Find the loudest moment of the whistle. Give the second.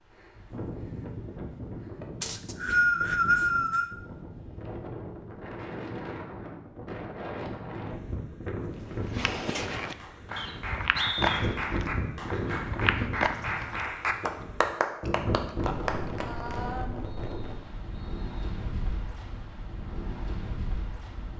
3 s.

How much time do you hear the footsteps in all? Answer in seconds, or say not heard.
5 s.